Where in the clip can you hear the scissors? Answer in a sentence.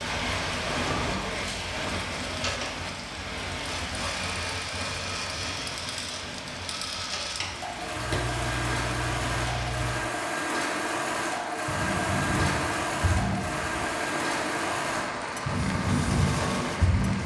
You can hear the scissors from 8.0 to 9.9 s.